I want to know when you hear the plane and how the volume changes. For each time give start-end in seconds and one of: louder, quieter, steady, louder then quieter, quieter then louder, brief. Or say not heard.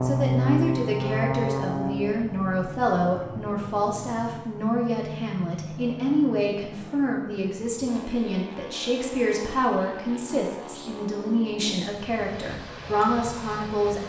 0.0-14.0 quieter.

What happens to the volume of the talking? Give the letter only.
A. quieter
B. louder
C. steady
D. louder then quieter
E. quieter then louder
C.